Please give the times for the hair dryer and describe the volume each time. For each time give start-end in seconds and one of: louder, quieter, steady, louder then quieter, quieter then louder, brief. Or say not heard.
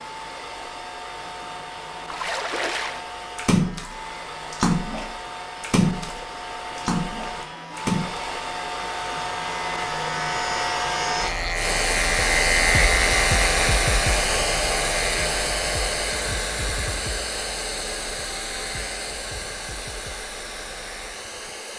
0.0-21.7 louder then quieter.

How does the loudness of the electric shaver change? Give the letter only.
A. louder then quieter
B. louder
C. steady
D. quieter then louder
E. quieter
A.